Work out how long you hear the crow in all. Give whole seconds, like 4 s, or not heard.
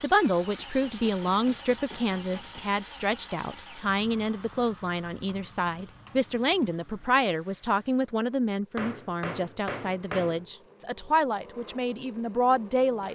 not heard.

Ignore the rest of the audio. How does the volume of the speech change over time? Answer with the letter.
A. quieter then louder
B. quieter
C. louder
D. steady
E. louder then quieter
D.